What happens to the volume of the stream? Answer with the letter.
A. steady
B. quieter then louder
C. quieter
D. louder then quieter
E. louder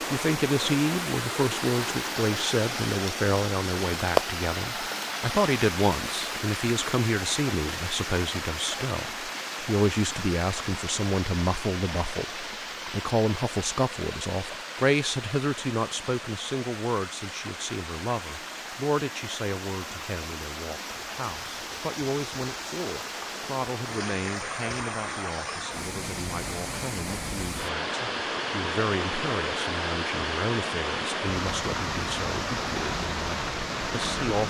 B.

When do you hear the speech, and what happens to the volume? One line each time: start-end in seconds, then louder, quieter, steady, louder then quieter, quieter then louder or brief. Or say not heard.
0.1-34.4 quieter.